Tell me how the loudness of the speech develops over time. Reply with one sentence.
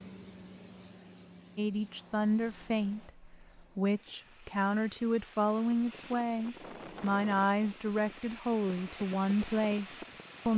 The volume of the speech stays about the same.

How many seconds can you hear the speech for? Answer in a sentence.
You can hear the speech for 9 seconds altogether.